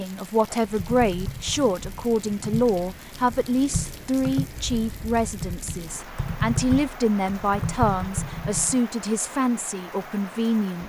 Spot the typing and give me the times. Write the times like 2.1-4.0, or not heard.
0.7-8.8.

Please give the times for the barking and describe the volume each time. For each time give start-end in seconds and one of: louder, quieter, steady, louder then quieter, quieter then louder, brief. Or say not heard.
not heard.